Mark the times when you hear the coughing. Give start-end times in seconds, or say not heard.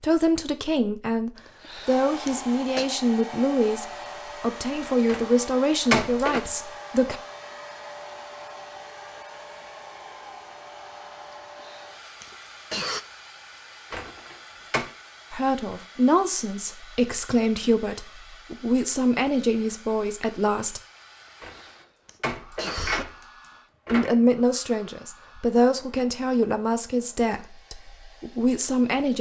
1.6-2.9, 11.6-13.0, 21.4-23.1.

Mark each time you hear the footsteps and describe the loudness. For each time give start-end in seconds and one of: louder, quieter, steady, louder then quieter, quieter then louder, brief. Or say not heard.
not heard.